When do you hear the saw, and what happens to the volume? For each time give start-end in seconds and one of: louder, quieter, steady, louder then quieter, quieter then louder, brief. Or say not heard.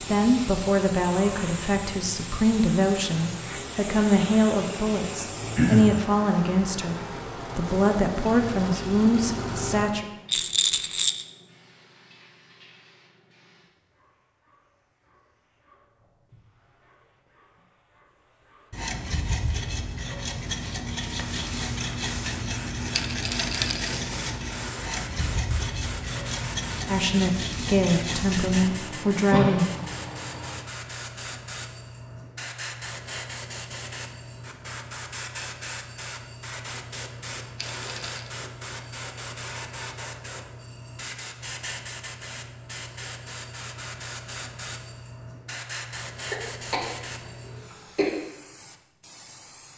18.7-28.8 steady.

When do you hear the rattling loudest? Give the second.
11 s.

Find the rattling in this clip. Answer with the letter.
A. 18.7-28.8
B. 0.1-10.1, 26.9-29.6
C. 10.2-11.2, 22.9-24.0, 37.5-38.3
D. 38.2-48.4
C.